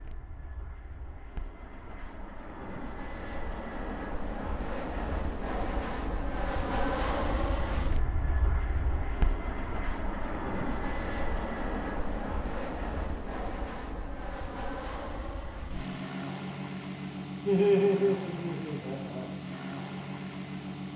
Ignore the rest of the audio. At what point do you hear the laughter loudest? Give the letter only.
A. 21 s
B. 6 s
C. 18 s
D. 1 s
C.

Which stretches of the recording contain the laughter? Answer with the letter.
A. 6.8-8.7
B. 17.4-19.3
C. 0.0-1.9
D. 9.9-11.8
B.